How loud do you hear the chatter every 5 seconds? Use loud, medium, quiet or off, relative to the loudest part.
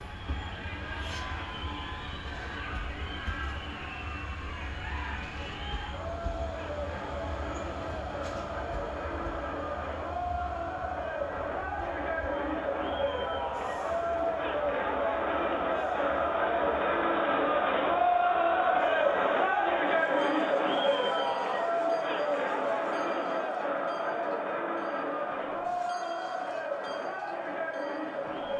quiet, medium, medium, loud, loud, medium.